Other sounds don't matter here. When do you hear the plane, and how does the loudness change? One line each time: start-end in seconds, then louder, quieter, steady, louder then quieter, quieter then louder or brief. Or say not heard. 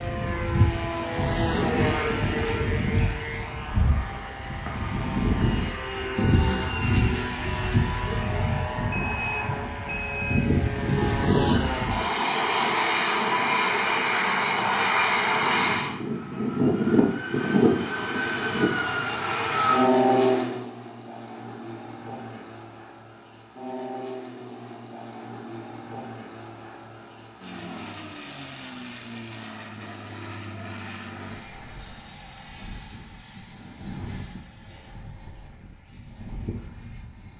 0.0-37.3 quieter.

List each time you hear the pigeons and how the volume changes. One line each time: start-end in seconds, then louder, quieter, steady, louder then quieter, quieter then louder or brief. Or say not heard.
not heard.